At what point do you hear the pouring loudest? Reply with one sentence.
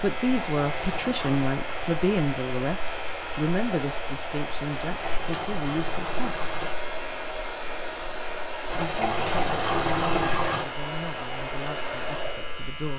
The volume of the pouring peaks at 10 seconds.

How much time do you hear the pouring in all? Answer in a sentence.
The pouring can be heard for 5 seconds in total.